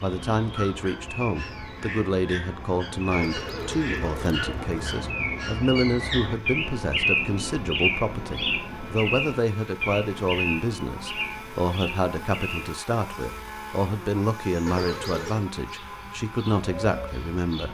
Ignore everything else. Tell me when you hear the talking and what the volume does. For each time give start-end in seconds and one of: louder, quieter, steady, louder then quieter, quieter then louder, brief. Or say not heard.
0.0-17.6 steady.